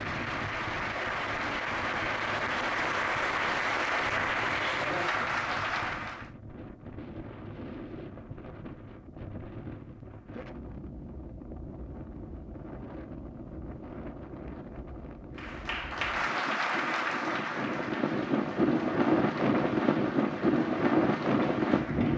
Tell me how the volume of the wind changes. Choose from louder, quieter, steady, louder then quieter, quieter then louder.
louder.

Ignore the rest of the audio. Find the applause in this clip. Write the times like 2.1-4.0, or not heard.
0.0-6.3, 15.3-22.1.